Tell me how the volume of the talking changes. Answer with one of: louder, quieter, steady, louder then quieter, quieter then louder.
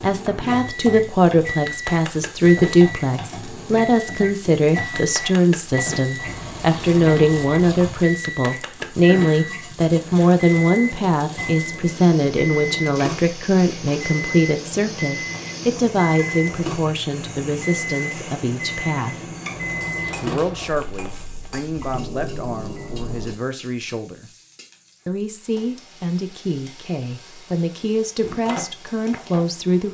quieter.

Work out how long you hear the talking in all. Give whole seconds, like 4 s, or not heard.
28 s.